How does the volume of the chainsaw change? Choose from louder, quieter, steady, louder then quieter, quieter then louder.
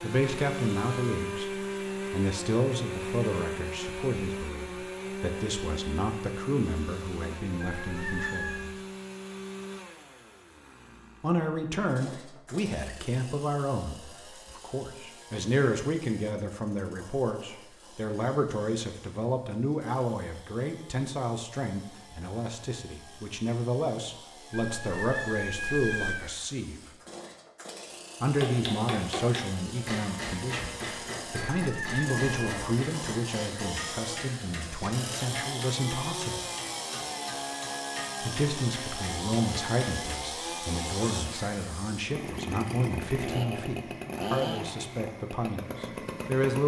quieter then louder.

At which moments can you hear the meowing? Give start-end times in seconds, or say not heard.
7.6-8.7, 24.5-26.4, 31.5-32.5.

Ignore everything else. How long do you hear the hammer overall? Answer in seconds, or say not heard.
12 s.